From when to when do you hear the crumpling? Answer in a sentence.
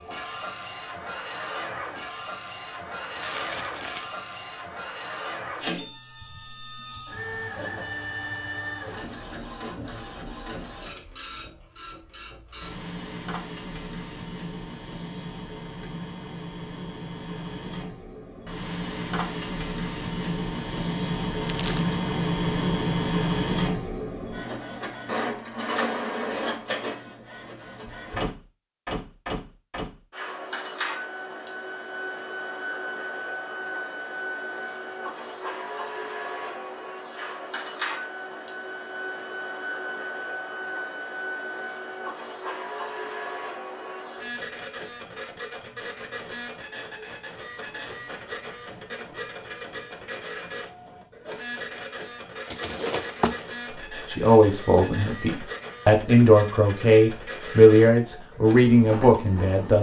The crumpling can be heard from 3.1 to 4.1 s, from 21.4 to 22.0 s and from 52.5 to 53.5 s.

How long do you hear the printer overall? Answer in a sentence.
The printer can be heard for 60 seconds in total.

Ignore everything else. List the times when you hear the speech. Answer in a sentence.
You can hear the speech from 54.1 to 59.7 s.